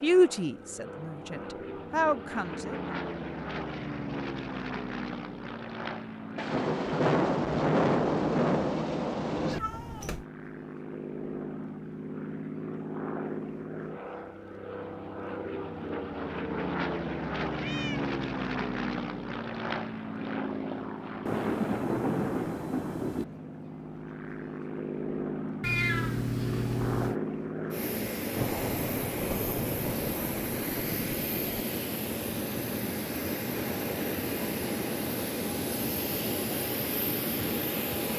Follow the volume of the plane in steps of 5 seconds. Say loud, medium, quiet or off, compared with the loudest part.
medium, medium, medium, loud, medium, loud, loud, loud.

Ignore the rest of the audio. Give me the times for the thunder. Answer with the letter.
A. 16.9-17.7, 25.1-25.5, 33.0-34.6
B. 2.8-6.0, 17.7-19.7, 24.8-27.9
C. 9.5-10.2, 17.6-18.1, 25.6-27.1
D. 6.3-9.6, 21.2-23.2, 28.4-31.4
D.